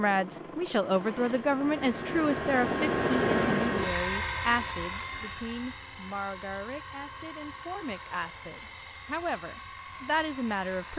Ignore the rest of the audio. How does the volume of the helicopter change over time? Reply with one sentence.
The volume of the helicopter goes up, then down.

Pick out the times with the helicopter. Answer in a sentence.
The helicopter can be heard from 0.0 to 10.9 s.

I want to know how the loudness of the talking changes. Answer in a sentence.
The loudness of the talking goes down, then up.